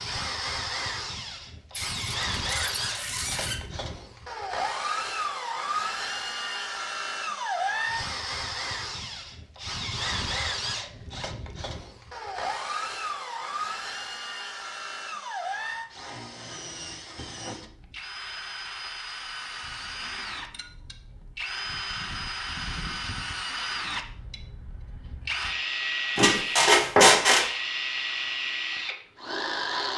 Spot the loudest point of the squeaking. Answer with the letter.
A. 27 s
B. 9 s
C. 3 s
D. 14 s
A.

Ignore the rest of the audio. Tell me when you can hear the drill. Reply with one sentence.
You can hear the drill from 0.0 to 29.9 s.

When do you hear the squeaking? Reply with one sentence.
You can hear the squeaking from 1.7 to 3.6 s and from 26.1 to 27.5 s.